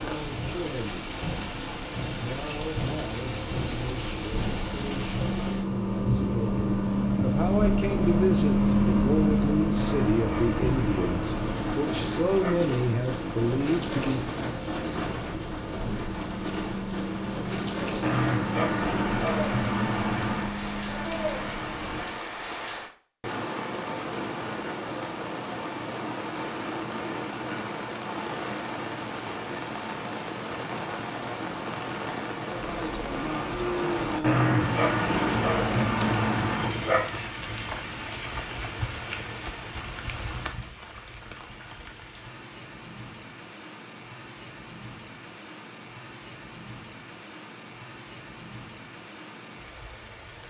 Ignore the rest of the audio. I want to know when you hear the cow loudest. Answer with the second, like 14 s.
34 s.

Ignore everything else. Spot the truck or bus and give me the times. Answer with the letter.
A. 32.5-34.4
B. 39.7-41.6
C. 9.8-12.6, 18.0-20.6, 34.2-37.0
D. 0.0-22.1
D.